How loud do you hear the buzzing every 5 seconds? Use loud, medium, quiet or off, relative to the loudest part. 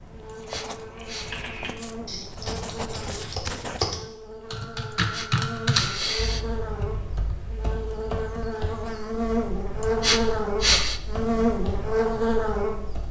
quiet, medium, loud.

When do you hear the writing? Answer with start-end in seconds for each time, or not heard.
0.0-4.0.